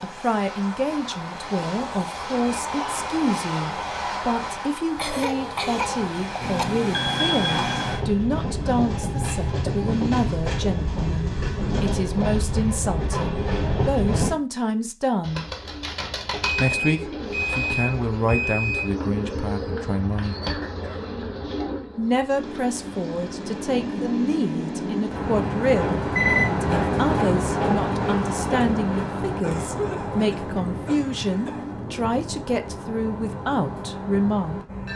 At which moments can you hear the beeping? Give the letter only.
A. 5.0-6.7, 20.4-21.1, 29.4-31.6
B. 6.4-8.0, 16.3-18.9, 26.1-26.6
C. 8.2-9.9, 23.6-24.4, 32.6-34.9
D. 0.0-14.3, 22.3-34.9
B.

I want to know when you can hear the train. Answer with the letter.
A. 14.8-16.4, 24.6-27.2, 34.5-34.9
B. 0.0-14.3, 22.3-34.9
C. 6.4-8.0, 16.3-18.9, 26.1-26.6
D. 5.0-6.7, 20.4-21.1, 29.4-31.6
B.